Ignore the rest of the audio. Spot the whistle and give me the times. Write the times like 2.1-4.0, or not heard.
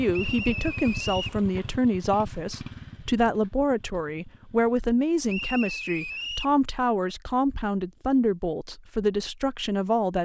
0.1-1.4, 5.2-6.5.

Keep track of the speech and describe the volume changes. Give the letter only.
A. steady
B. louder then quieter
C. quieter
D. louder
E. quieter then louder
A.